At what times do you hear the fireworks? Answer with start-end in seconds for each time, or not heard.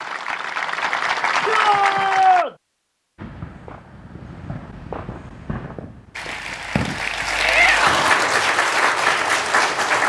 3.1-8.7.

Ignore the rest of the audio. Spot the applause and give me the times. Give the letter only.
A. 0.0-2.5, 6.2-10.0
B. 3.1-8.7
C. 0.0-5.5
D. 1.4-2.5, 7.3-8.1
A.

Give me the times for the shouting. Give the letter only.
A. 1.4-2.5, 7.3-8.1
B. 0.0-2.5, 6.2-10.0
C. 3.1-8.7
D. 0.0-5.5
A.